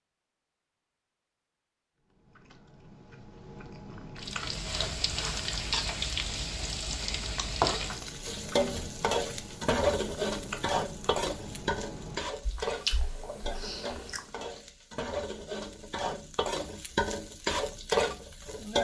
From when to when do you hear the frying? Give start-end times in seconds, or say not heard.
4.2-18.7.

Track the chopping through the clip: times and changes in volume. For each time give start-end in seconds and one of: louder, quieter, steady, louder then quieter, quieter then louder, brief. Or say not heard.
not heard.